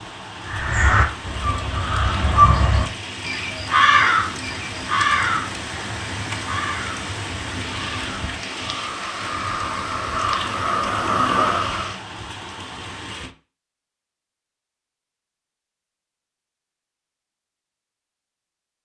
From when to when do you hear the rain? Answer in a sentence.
The rain can be heard from 0.0 to 13.3 s.